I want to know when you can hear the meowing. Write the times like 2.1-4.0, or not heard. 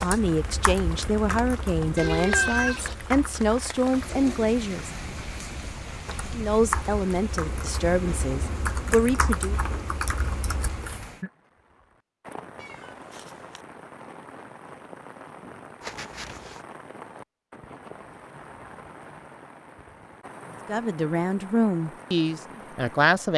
1.9-3.0, 12.6-13.6, 15.8-16.6.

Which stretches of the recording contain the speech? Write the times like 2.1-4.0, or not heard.
0.0-4.9, 6.3-9.6, 20.6-23.3.